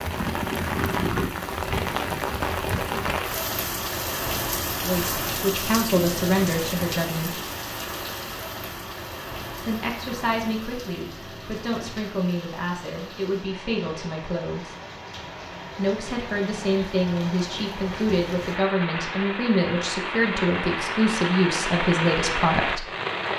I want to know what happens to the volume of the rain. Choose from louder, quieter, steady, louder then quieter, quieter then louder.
quieter then louder.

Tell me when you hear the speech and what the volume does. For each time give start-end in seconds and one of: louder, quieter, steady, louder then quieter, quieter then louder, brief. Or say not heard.
4.8-7.4 brief
9.6-14.8 steady
15.8-22.9 steady.